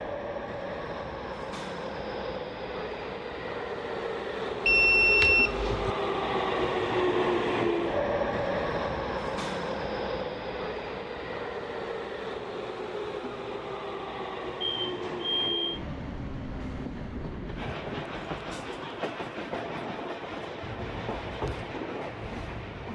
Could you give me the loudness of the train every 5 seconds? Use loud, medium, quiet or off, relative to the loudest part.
medium, loud, medium, medium, medium.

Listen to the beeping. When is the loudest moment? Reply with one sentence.
The volume of the beeping peaks at 5 seconds.